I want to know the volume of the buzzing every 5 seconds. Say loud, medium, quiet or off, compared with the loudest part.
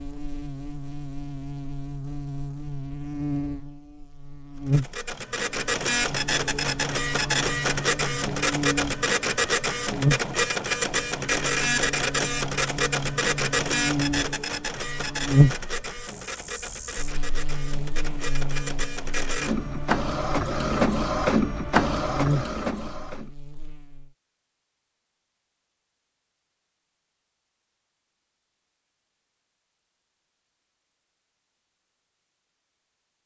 medium, medium, loud, loud, medium, off, off.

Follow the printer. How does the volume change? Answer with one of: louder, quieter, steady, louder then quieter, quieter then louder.
quieter then louder.